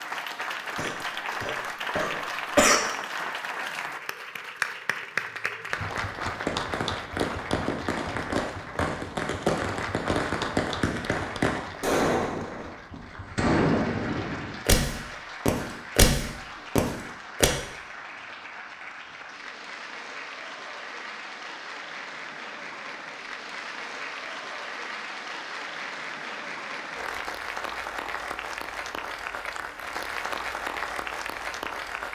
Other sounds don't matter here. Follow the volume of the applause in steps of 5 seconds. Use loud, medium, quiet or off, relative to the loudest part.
loud, loud, medium, medium, medium, loud, loud.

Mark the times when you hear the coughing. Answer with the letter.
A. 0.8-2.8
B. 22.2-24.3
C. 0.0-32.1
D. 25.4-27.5
A.